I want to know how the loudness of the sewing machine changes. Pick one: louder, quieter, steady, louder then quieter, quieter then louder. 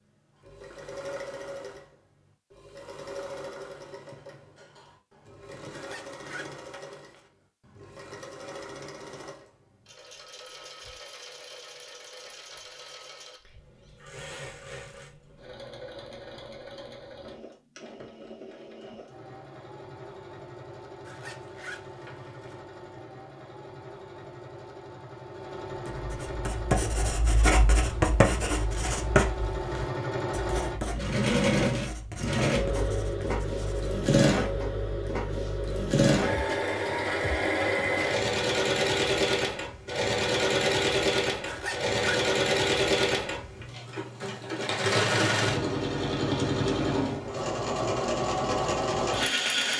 louder.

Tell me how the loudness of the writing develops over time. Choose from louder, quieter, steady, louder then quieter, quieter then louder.
quieter.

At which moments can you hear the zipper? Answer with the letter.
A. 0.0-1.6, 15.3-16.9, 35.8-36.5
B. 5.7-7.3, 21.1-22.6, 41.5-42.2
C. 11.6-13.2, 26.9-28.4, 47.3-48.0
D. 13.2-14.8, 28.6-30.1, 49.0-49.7
B.